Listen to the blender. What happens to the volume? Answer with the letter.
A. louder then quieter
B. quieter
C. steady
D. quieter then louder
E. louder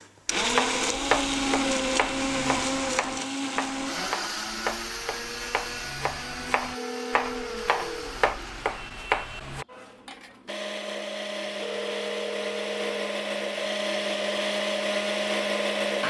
D.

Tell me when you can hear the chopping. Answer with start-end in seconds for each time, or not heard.
0.3-9.7.